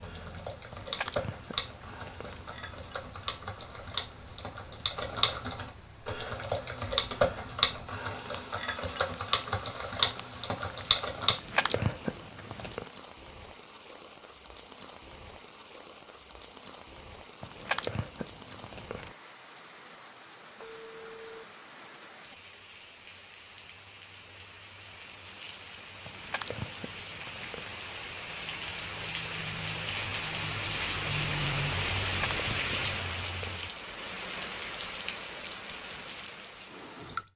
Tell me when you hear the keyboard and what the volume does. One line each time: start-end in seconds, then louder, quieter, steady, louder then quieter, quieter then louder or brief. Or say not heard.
0.0-11.3 louder.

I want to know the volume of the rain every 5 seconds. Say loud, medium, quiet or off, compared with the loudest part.
quiet, quiet, quiet, quiet, quiet, medium, loud, medium.